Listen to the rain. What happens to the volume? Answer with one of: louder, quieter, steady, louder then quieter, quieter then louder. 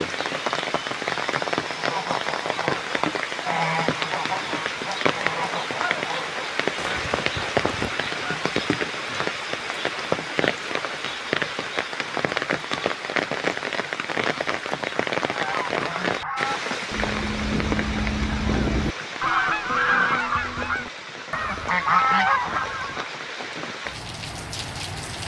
quieter.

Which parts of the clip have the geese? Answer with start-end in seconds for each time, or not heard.
1.7-9.3, 15.3-23.1.